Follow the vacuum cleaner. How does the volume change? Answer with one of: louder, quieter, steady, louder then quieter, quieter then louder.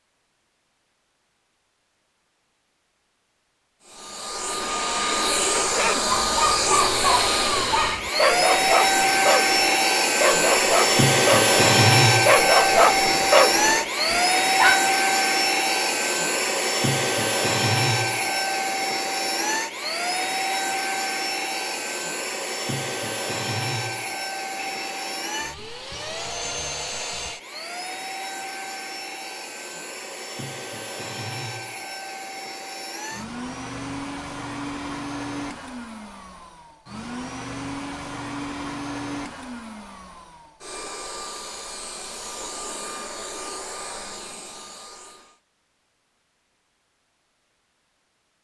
quieter.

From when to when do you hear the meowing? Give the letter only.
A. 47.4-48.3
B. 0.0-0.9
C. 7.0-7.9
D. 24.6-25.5
D.